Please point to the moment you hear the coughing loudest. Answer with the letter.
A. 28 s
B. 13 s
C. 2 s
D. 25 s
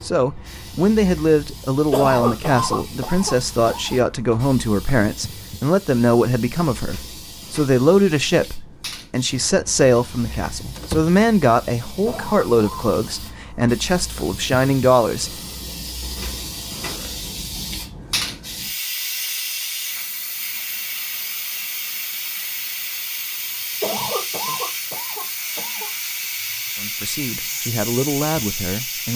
C.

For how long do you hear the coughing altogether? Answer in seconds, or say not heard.
5 s.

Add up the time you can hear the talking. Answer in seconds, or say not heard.
18 s.